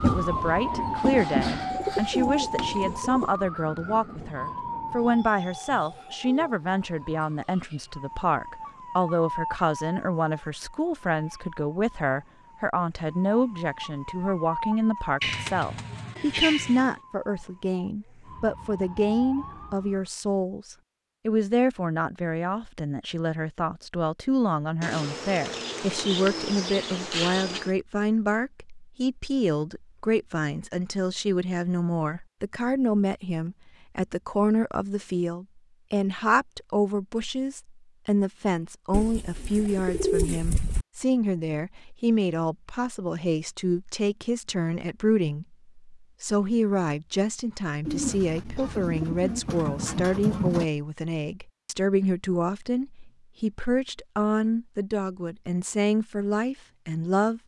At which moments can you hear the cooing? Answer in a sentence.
The cooing can be heard from 1.7 to 3.4 s, from 15.2 to 16.9 s, from 24.8 to 27.7 s, from 38.9 to 40.9 s and from 47.9 to 50.6 s.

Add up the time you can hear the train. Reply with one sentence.
The train can be heard for 5 seconds in total.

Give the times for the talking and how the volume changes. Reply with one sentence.
The talking can be heard from 0.0 to 57.4 s, at a steady volume.